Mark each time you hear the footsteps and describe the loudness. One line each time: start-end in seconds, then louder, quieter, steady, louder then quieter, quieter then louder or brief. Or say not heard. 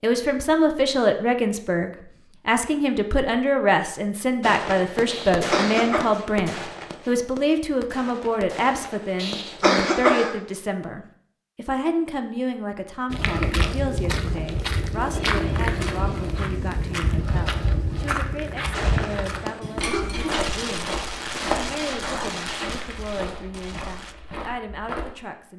13.1-25.1 quieter.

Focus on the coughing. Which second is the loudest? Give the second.
10 s.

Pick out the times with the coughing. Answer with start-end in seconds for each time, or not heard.
5.0-6.1, 9.2-10.3, 19.8-20.4.